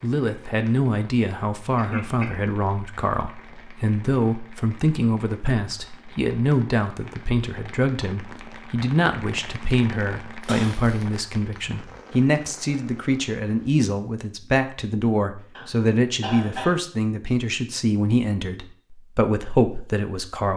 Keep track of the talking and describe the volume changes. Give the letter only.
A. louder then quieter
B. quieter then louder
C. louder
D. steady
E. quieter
D.